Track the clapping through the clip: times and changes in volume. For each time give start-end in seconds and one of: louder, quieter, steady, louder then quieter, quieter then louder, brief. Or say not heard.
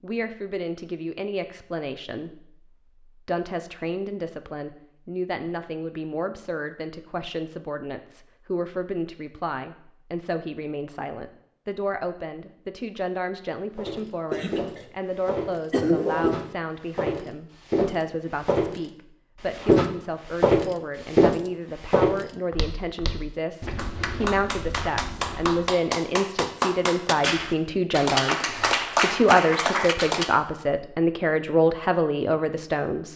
23.8-30.4 louder.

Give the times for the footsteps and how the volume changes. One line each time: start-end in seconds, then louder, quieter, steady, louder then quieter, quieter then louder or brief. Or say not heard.
13.8-25.6 louder then quieter.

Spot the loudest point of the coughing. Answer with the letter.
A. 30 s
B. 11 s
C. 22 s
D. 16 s
D.